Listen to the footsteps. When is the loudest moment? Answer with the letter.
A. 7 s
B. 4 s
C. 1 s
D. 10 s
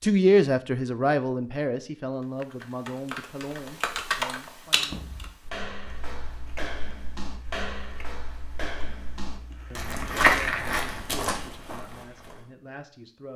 D.